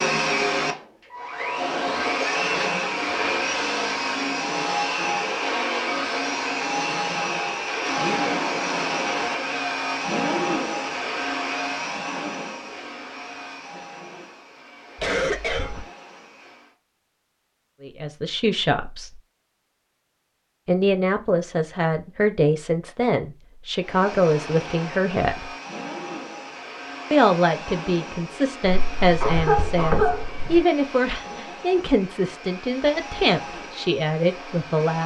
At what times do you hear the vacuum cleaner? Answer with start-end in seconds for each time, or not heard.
0.0-16.8, 23.8-35.0.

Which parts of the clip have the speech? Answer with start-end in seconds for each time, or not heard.
17.8-19.1, 20.6-25.5, 27.1-35.0.